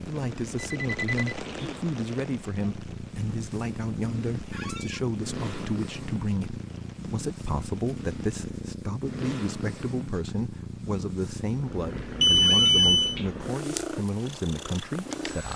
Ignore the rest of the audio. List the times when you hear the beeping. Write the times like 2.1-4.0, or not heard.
0.8-1.4, 12.2-13.2.